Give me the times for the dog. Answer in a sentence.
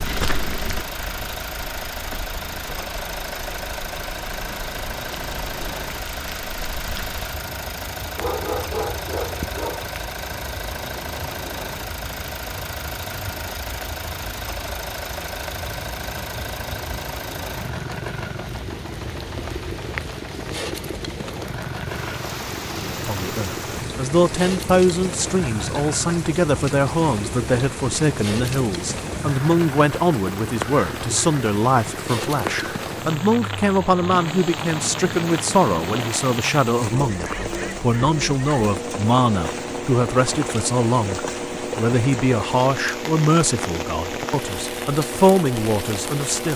The dog can be heard from 8.2 to 9.9 s and from 37.0 to 38.6 s.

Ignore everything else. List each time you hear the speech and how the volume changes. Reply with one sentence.
You can hear the speech from 22.8 to 46.5 s, at a steady volume.